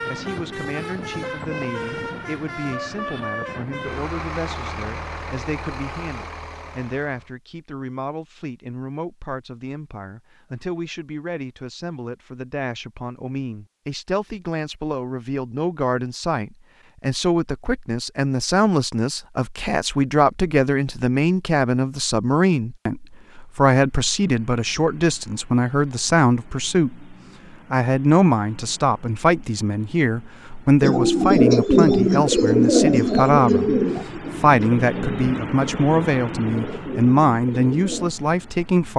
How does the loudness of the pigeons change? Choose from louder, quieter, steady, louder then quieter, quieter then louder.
quieter.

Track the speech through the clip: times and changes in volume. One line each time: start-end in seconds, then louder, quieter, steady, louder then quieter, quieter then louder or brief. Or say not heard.
0.1-38.9 louder.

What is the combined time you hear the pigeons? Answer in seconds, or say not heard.
7 s.